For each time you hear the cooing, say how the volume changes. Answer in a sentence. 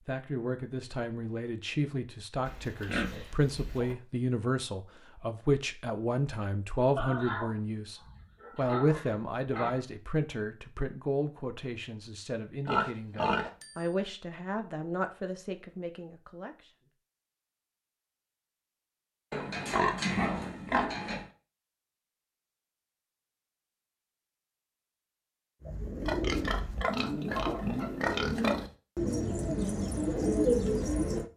You can hear the cooing from 25.6 to 31.3 s, getting louder.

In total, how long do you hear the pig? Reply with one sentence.
You can hear the pig for 10 seconds altogether.